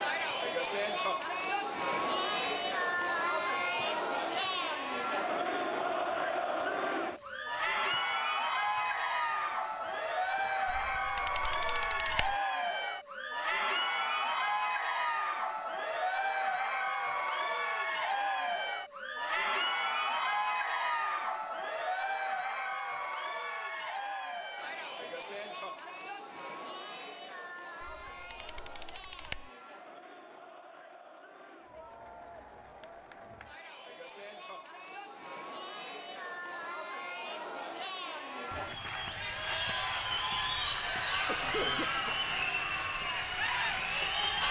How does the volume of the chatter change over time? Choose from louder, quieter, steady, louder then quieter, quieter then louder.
quieter then louder.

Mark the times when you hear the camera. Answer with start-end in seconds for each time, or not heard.
10.7-12.3, 27.8-29.5.